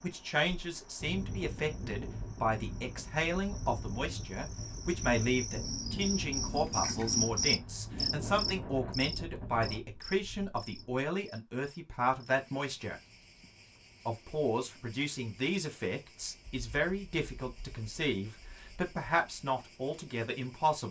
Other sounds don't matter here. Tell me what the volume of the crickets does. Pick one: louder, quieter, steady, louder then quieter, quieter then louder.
louder then quieter.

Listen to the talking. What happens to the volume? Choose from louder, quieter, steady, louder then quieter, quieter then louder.
steady.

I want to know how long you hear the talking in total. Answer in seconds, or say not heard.
20 s.